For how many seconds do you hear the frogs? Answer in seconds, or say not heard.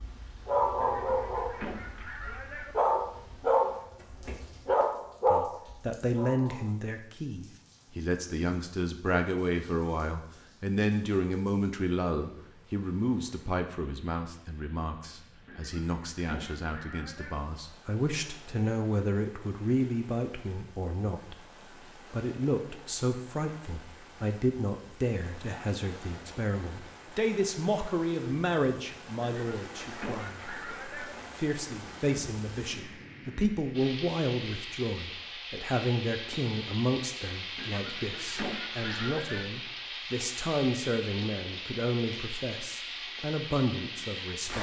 not heard.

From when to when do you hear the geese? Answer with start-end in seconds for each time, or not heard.
0.8-2.8, 15.4-17.4, 29.2-31.1, 37.5-39.5.